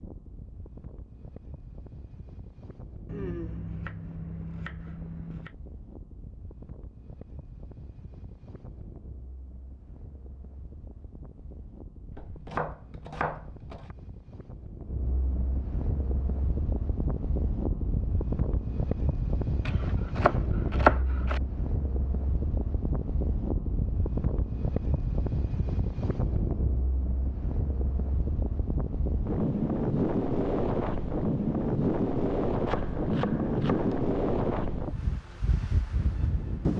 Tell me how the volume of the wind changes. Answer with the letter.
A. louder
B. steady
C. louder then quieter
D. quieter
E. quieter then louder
A.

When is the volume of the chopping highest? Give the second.
21 s.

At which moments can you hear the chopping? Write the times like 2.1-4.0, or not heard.
3.0-5.5, 12.1-13.9, 19.6-21.4, 32.6-34.0.